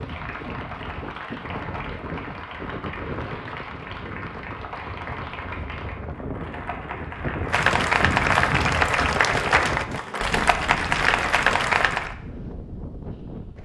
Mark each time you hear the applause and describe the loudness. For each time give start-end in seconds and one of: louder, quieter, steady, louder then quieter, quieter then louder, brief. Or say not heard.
0.0-12.2 louder.